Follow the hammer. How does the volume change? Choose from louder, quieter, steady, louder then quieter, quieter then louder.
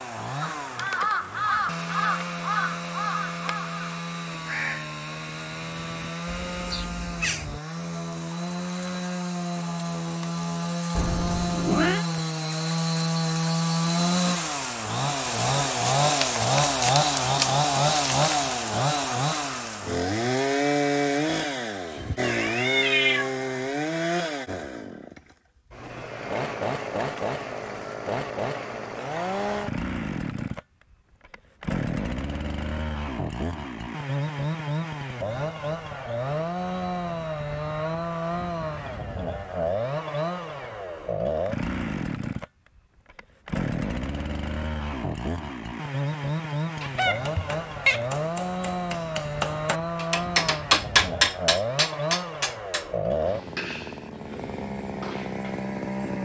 louder then quieter.